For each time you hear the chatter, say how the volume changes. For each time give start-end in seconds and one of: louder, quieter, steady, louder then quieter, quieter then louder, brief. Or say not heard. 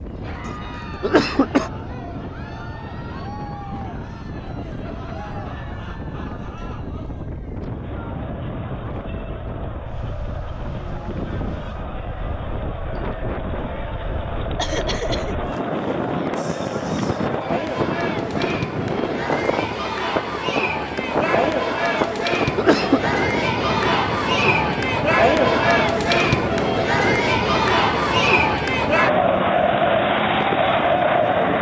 0.1-31.5 louder.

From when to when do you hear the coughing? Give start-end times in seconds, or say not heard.
0.4-1.7, 14.6-15.3, 21.9-23.0.